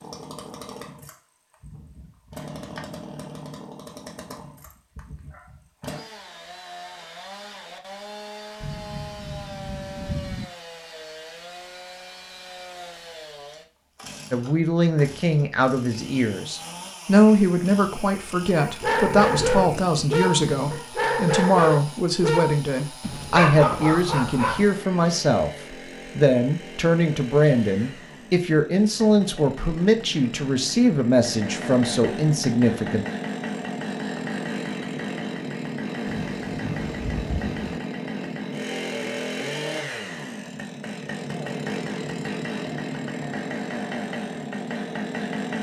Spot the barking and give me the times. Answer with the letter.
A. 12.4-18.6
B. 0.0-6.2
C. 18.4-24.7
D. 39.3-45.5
C.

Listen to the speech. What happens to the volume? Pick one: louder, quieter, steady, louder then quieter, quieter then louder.
steady.